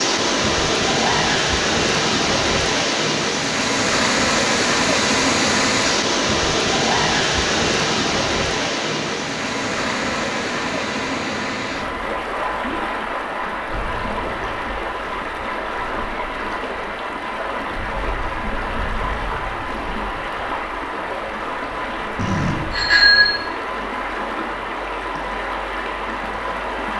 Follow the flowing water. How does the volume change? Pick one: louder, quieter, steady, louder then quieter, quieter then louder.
quieter.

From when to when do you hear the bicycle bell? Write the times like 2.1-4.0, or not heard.
22.1-23.3.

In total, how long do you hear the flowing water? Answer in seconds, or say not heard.
27 s.